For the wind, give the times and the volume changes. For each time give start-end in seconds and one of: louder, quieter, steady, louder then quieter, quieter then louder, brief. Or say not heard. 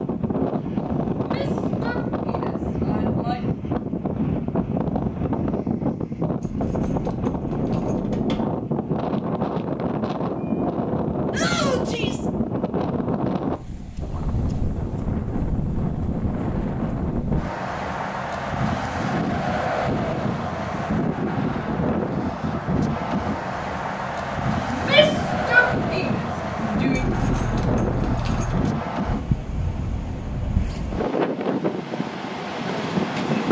0.0-33.4 steady.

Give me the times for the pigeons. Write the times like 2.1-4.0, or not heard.
not heard.